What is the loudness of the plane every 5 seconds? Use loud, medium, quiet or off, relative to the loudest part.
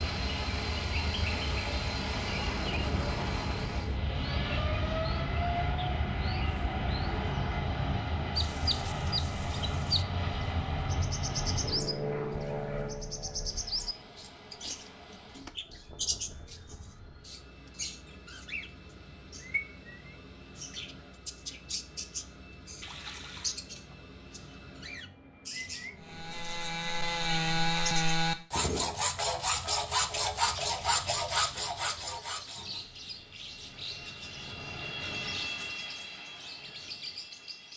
loud, loud, loud, quiet, quiet, quiet, medium, medium.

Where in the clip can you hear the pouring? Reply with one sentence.
The pouring can be heard from 22.8 to 23.6 s.